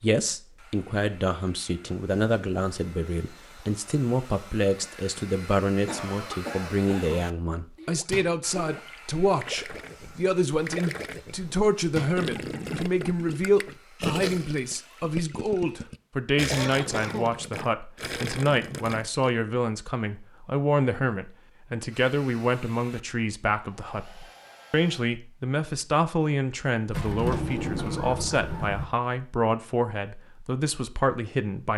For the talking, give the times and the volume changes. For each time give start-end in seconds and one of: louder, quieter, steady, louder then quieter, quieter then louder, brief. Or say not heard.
0.0-31.7 steady.